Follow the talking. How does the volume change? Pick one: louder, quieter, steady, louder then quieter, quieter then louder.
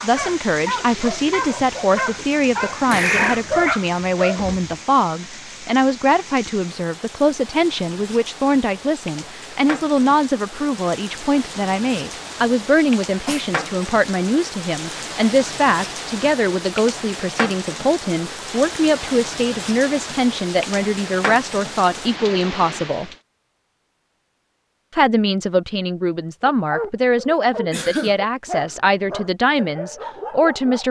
steady.